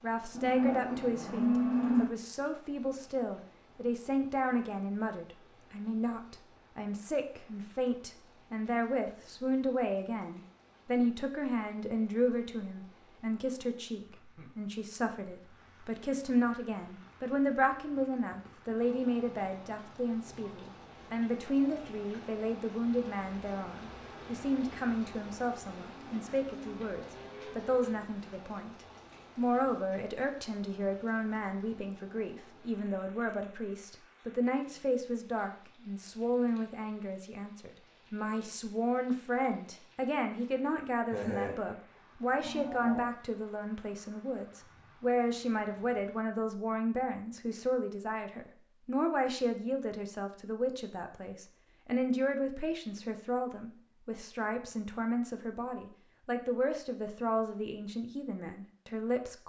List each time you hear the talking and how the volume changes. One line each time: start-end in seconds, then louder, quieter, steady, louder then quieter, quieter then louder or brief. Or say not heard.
0.0-59.4 steady.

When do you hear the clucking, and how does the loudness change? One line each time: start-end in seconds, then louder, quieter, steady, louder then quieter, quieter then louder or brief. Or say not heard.
not heard.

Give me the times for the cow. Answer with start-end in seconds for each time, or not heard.
0.3-2.1, 25.8-27.8, 41.0-41.5, 42.4-43.0.